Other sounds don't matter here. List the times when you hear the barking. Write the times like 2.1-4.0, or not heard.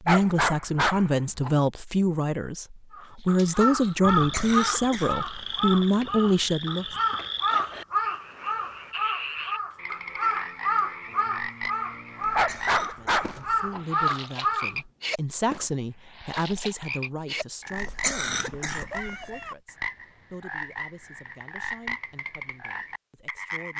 0.1-1.6, 12.3-13.8.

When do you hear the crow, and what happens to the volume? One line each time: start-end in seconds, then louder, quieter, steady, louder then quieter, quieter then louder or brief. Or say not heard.
2.9-14.8 steady.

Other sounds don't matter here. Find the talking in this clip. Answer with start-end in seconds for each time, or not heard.
0.0-7.0, 12.8-23.7.